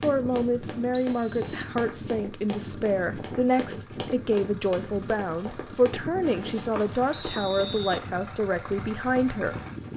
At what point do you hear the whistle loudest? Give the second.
1 s.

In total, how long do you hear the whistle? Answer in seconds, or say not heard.
2 s.